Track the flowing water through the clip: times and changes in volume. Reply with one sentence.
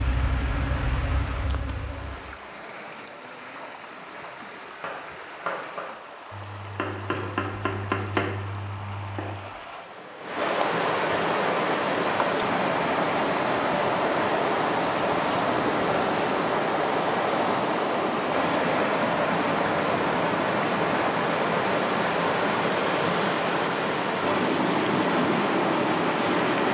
You can hear the flowing water from 0.0 to 26.6 s, getting louder.